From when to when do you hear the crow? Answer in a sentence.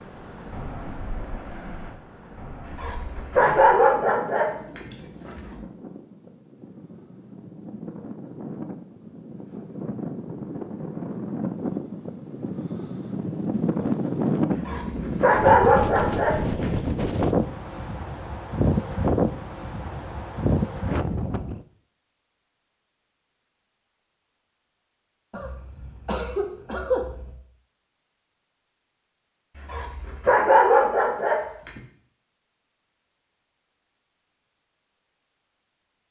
The crow can't be heard in this clip.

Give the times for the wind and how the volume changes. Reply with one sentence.
You can hear the wind from 0.0 to 21.6 s, getting louder.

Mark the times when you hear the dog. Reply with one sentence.
The dog can be heard from 2.6 to 5.5 s, from 14.5 to 16.8 s and from 29.6 to 31.8 s.